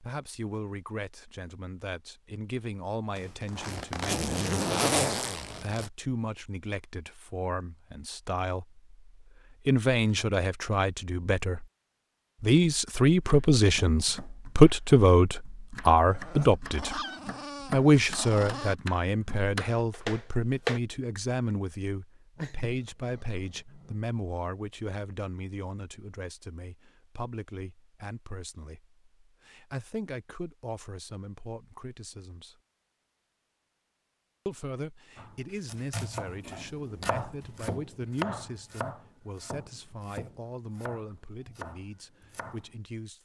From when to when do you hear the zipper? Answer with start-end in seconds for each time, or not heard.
3.1-5.9.